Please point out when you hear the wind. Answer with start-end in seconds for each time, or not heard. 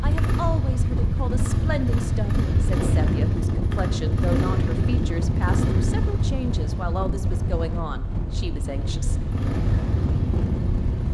0.0-11.1.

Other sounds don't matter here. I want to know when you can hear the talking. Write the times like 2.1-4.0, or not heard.
0.0-9.2.